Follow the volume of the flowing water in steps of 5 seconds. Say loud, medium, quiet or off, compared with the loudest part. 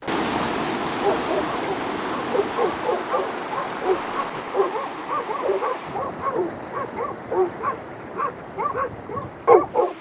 loud, medium.